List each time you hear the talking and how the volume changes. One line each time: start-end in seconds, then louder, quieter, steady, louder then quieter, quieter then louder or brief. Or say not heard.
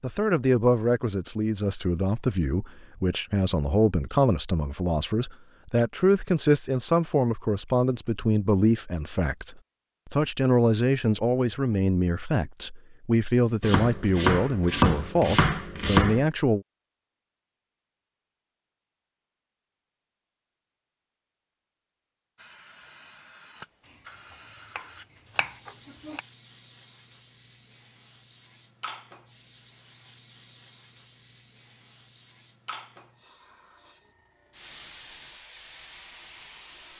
0.0-16.6 steady.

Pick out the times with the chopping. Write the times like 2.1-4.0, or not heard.
13.6-16.2, 24.8-26.2.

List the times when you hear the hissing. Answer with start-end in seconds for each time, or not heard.
22.4-36.9.